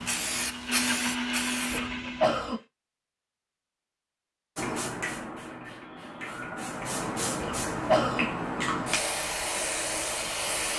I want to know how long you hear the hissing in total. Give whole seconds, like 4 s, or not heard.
8 s.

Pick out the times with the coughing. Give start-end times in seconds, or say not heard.
1.7-2.6, 7.4-8.2.